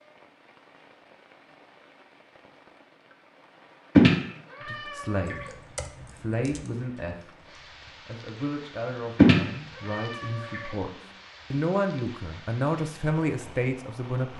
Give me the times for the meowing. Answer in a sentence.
You can hear the meowing from 4.0 to 5.5 s and from 9.2 to 10.7 s.